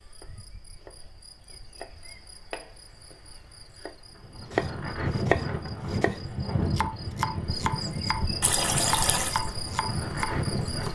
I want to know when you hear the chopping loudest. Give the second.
5 s.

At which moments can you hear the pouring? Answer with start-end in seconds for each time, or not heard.
8.4-9.4.